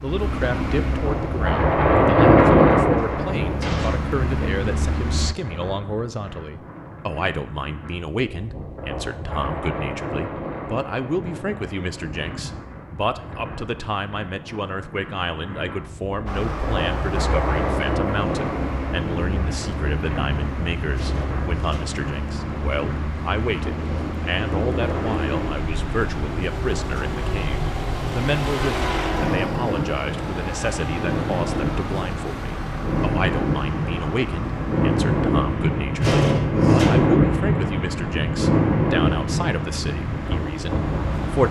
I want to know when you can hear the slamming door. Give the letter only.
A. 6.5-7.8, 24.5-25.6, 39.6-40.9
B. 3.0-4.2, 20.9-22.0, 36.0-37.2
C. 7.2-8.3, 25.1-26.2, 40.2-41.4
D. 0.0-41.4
B.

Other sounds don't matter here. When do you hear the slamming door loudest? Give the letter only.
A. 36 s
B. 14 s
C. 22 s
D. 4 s
A.